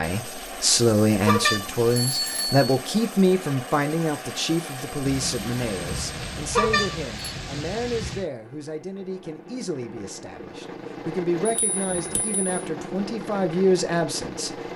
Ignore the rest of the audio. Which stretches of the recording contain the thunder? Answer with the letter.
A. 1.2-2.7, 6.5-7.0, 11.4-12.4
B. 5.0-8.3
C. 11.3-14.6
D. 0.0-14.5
B.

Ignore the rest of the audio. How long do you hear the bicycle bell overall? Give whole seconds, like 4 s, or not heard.
3 s.